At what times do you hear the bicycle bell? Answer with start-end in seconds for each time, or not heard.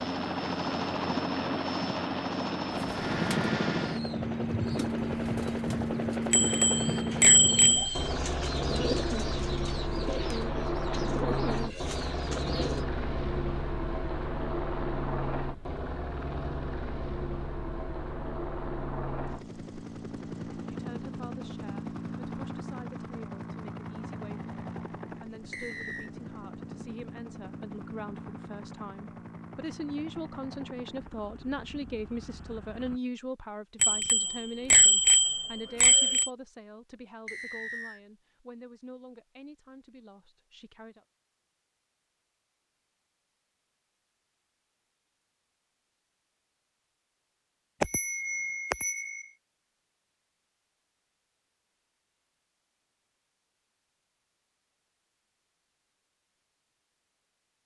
6.3-8.1, 33.8-36.3, 47.8-49.2.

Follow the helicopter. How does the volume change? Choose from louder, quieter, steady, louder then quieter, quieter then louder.
quieter.